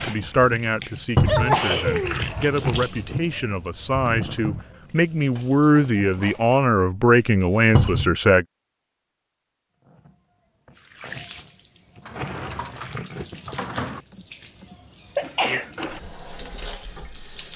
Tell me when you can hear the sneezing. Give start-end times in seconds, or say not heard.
1.2-2.5, 14.1-15.7.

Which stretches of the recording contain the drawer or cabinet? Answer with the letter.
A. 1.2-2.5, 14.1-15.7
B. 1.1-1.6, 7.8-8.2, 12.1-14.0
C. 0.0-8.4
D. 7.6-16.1
B.